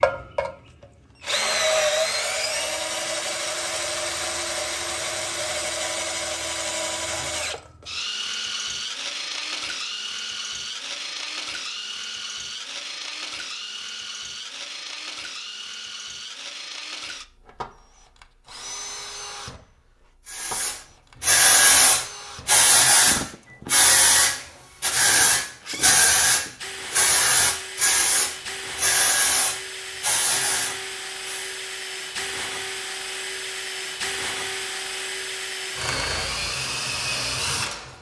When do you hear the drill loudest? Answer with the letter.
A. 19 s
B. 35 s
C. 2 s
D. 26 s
C.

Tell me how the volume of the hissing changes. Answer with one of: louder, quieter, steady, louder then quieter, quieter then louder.
quieter.